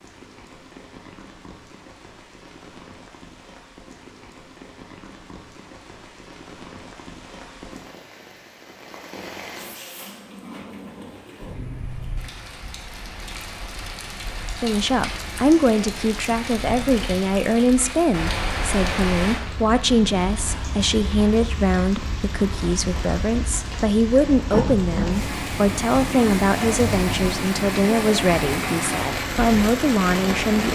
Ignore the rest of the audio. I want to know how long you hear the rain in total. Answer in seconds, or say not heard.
31 s.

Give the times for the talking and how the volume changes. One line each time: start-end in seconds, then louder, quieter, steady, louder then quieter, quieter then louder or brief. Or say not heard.
14.6-30.7 steady.